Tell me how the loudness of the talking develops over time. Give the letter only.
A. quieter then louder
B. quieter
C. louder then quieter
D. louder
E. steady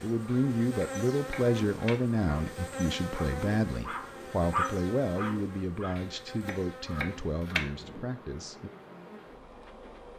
B.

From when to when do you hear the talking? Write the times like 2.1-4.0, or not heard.
0.0-8.7.